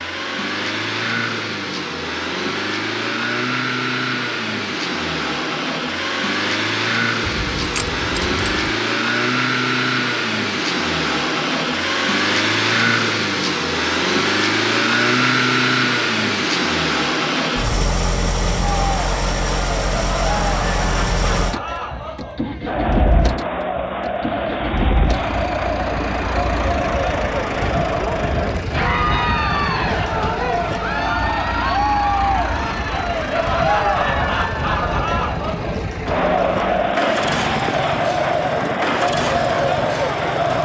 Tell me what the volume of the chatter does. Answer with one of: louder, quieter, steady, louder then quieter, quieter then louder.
louder.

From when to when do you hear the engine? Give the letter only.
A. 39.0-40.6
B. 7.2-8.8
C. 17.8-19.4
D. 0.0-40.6
D.